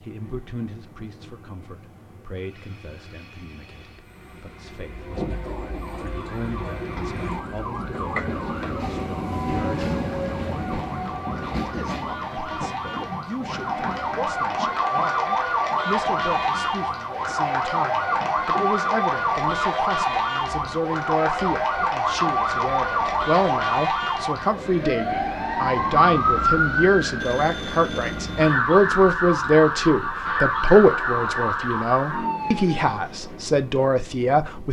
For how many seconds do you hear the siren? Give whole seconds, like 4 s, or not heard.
28 s.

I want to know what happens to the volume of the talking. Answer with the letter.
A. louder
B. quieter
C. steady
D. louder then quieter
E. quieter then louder
A.